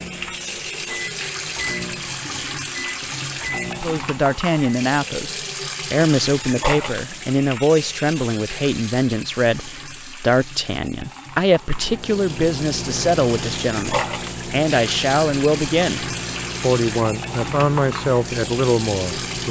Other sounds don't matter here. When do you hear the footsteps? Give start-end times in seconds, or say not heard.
not heard.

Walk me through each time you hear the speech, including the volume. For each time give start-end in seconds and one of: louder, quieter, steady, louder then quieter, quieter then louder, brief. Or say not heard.
3.8-19.4 steady.